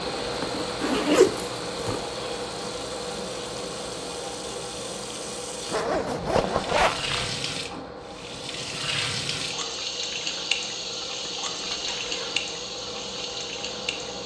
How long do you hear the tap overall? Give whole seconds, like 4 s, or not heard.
14 s.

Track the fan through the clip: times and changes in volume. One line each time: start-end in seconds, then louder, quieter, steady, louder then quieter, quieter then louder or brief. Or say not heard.
0.0-14.2 quieter.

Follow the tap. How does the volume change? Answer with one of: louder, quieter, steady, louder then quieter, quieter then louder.
louder.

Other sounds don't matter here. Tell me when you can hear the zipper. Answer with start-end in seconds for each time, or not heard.
0.1-2.0, 5.7-7.2, 11.6-12.4.